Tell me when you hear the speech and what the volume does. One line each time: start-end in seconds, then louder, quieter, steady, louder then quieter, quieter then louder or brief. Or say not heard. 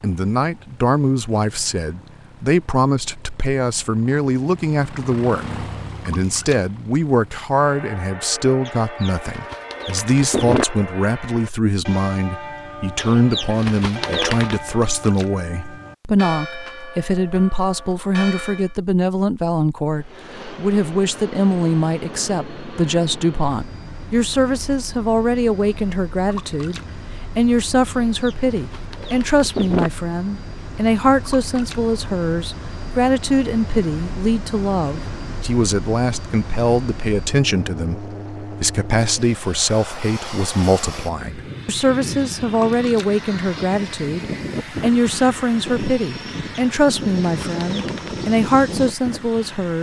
0.0-49.7 steady.